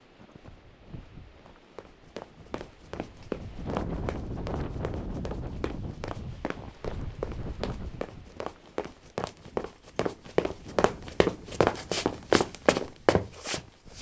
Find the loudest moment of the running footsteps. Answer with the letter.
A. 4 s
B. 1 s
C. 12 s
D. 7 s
C.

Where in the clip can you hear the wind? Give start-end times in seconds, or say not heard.
0.0-13.9.